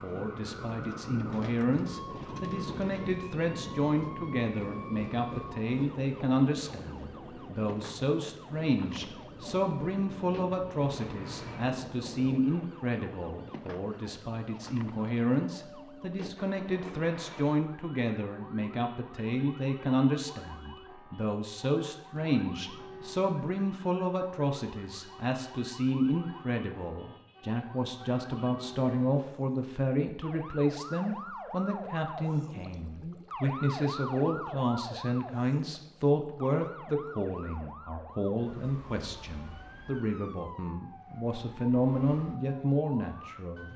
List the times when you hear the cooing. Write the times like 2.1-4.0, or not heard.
not heard.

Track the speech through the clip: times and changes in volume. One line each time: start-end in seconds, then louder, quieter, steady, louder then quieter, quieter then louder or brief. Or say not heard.
0.0-43.7 steady.